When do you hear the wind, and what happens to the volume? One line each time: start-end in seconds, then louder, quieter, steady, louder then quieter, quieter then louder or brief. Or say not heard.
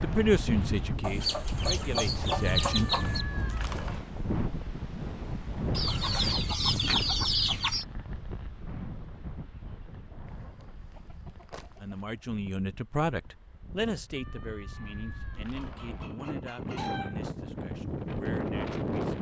0.0-19.1 quieter then louder.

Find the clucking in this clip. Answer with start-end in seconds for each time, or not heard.
1.0-3.2, 5.8-7.8, 10.2-12.0, 15.6-17.3.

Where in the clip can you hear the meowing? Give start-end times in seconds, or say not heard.
2.3-4.0, 14.2-16.1.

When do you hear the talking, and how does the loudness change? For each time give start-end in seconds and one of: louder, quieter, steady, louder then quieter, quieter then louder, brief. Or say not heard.
0.0-3.0 brief
11.8-19.1 quieter.